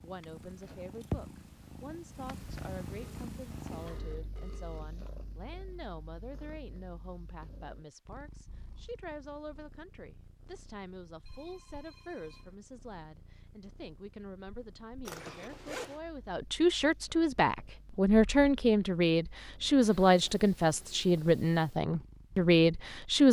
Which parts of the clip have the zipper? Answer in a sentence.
The zipper can be heard from 15.1 to 16.0 s.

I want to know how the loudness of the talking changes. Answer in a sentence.
The loudness of the talking goes up.